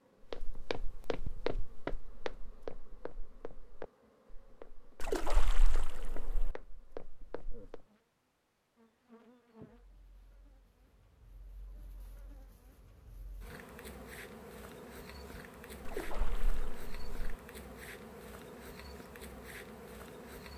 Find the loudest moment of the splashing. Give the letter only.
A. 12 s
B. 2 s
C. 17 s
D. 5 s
D.